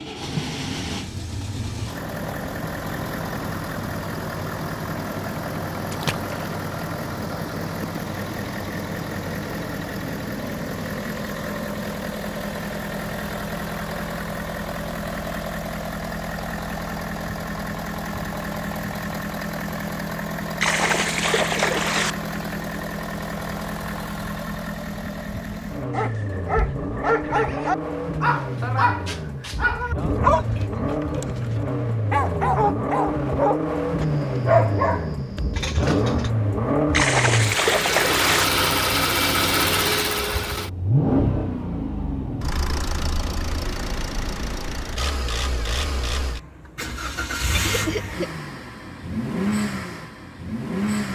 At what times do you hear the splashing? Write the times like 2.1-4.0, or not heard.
5.9-6.5, 20.6-22.1, 36.9-38.5.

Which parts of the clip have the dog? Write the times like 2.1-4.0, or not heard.
25.9-36.3.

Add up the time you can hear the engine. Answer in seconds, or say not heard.
51 s.